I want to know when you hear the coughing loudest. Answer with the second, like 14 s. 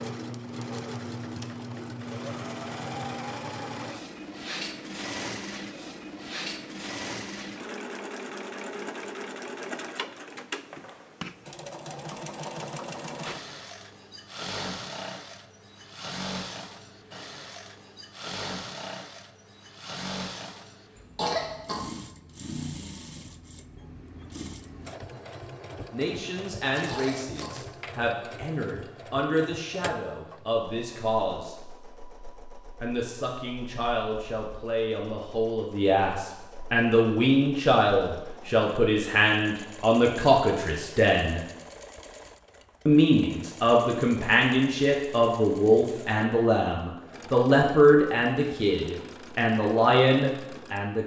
21 s.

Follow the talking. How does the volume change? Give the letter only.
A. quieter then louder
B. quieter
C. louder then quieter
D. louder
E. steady
D.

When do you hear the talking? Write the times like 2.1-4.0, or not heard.
25.9-31.6, 32.8-41.4, 42.9-51.0.